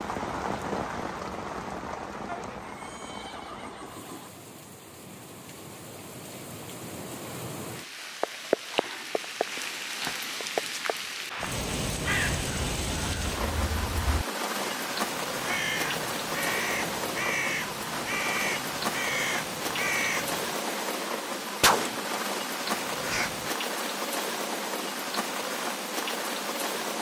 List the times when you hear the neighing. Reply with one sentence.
The neighing can be heard from 2.2 to 4.3 s.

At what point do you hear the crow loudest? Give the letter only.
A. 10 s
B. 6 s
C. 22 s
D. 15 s
C.